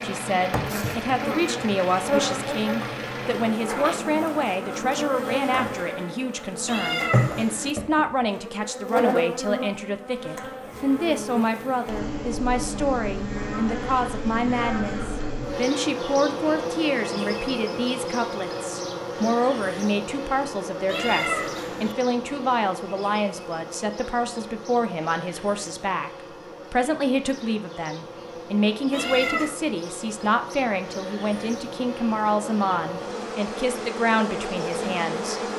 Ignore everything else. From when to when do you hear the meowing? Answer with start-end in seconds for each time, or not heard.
6.7-7.8, 20.9-21.9, 28.9-29.6.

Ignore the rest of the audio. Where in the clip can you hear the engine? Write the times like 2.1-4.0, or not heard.
0.0-3.6.